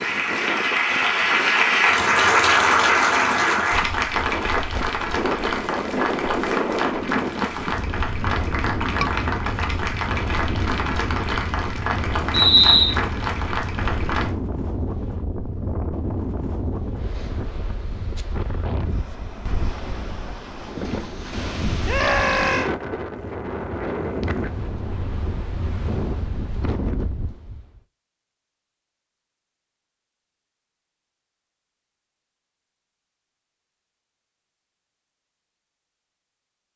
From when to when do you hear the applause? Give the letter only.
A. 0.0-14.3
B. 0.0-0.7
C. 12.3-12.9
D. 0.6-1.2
A.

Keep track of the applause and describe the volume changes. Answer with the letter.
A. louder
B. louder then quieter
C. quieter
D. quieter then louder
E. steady
C.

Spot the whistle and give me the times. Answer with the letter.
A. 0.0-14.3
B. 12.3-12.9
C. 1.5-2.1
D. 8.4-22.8
B.